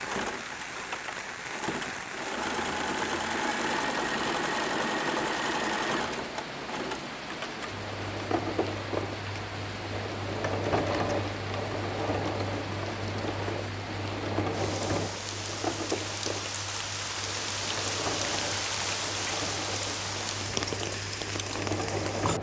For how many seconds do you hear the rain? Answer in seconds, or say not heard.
22 s.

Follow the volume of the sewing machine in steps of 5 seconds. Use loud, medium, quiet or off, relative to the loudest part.
loud, loud, loud, medium, loud.